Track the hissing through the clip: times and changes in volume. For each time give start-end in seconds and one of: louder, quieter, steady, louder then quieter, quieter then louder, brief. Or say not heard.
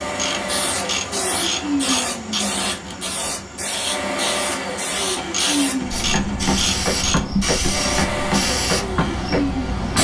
0.0-9.9 steady.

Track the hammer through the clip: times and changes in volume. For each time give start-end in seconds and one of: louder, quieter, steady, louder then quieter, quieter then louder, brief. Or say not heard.
5.8-9.9 steady.